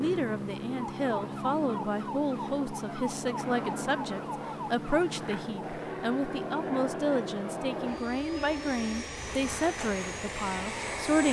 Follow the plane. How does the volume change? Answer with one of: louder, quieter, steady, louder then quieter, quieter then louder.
steady.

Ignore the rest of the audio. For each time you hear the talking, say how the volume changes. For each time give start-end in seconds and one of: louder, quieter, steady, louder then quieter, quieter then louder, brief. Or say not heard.
0.0-11.2 steady.